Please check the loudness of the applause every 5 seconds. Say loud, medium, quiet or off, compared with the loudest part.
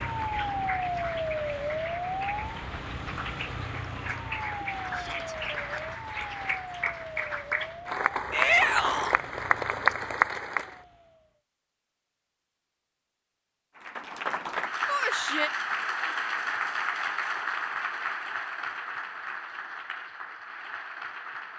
medium, loud, loud, loud, medium.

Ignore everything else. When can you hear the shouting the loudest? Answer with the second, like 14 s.
9 s.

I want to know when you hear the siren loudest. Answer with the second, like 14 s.
1 s.